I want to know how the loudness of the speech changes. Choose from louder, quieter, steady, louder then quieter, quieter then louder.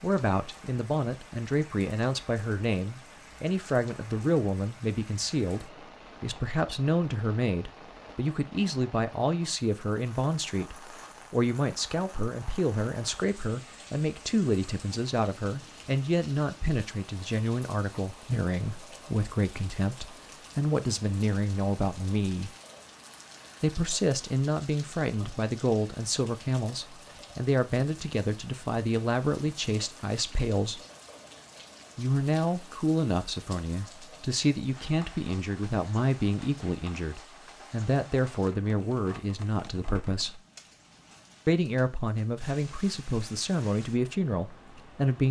steady.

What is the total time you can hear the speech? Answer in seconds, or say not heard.
42 s.